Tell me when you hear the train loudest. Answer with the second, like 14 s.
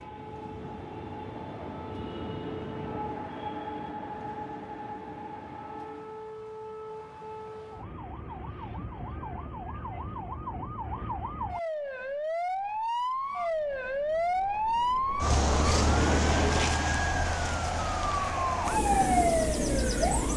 16 s.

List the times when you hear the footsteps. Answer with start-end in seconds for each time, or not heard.
not heard.